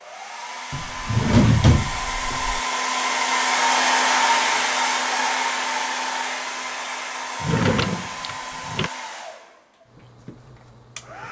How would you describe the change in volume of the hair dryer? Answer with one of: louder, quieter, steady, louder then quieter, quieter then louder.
louder then quieter.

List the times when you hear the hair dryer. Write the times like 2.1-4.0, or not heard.
0.0-11.2.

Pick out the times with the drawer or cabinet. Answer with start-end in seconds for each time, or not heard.
0.7-2.6, 7.4-8.9.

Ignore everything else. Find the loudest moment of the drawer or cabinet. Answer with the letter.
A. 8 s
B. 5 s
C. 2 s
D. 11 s
C.